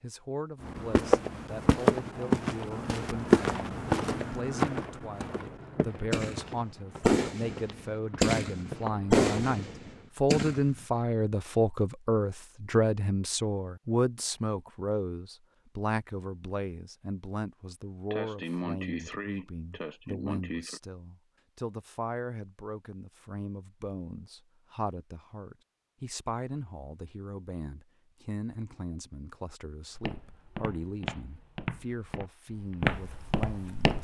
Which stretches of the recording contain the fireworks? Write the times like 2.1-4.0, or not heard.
6.1-10.8.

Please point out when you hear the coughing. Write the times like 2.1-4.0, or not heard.
18.1-20.8.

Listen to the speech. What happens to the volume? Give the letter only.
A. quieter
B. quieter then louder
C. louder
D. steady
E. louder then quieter
E.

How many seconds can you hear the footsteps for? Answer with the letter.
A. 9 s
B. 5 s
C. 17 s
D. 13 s
D.